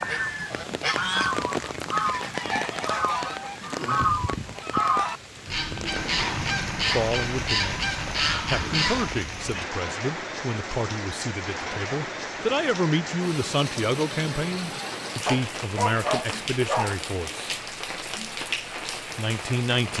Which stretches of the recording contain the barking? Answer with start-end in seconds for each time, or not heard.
15.2-16.9.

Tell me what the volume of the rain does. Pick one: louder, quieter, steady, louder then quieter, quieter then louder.
steady.